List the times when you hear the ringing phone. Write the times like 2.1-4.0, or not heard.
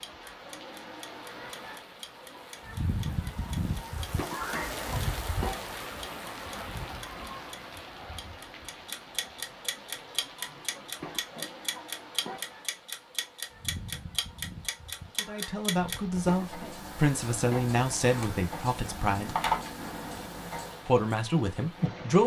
19.2-19.7.